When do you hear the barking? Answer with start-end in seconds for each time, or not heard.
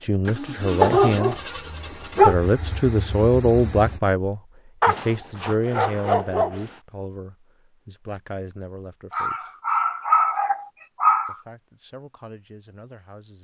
0.8-2.4, 4.8-6.8, 9.1-11.3.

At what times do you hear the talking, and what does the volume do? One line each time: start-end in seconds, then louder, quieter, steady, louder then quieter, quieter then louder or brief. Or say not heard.
0.0-1.4 brief
2.2-9.5 quieter
11.2-13.3 brief.